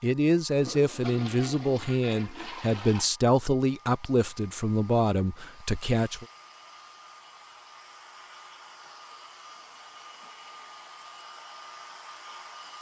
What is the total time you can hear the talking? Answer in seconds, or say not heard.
6 s.